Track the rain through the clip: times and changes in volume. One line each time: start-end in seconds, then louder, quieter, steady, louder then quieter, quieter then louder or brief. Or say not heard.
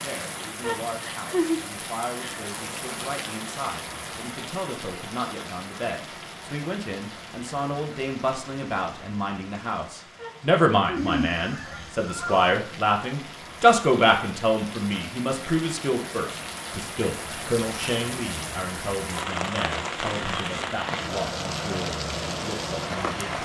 0.0-23.4 quieter then louder.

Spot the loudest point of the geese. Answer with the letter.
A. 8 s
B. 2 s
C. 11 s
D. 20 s
C.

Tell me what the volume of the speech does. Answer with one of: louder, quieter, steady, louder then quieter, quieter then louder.
louder then quieter.